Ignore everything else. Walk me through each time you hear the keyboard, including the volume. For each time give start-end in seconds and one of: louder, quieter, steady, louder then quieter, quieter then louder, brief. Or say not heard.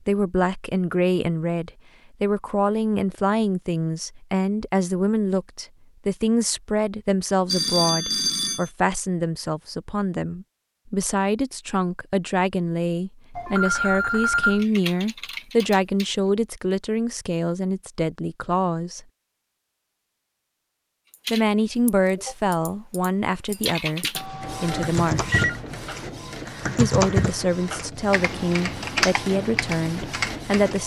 14.6-16.1 brief
21.1-30.8 louder.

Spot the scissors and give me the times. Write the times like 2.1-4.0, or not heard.
not heard.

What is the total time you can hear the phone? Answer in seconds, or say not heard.
4 s.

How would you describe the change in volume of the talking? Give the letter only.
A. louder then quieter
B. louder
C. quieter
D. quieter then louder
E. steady
E.